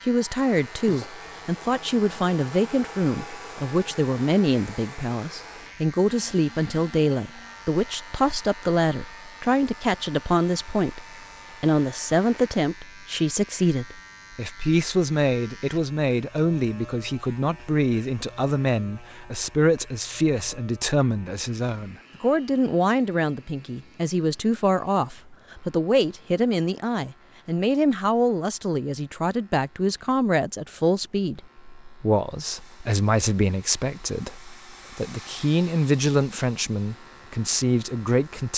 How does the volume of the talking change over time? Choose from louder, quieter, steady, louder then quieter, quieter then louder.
steady.